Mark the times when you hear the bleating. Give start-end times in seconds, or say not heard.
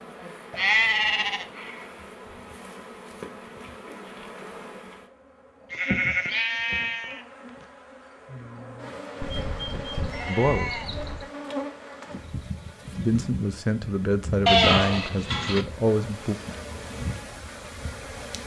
0.5-1.4, 5.7-7.7, 9.2-11.2, 14.4-15.7.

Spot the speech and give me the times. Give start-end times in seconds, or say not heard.
10.2-10.8, 12.9-16.4.